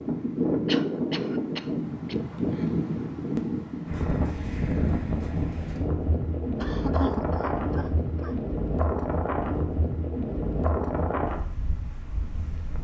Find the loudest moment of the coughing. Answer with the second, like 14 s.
7 s.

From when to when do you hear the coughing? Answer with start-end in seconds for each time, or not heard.
0.7-2.1, 6.5-8.4.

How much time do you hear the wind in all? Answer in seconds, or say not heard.
13 s.